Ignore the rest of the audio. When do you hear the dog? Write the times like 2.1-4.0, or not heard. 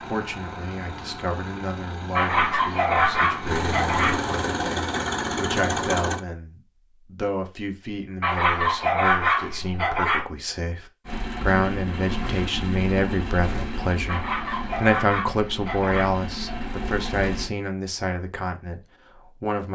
2.1-4.2, 8.2-10.2, 14.1-16.1.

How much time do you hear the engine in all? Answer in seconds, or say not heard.
13 s.